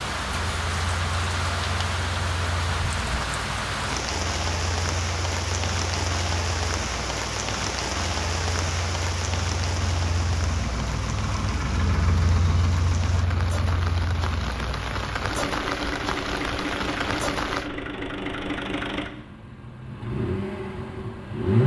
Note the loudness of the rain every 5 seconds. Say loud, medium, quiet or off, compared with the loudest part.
loud, loud, medium, loud, off.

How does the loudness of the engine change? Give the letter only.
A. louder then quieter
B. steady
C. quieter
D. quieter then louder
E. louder
E.